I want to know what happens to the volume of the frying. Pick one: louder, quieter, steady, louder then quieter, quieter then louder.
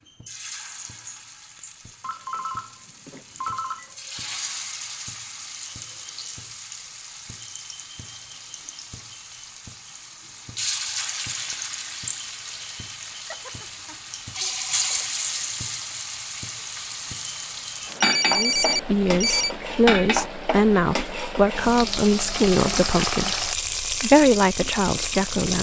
louder.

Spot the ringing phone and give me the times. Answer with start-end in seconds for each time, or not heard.
2.0-3.9, 13.3-15.1, 17.8-19.6.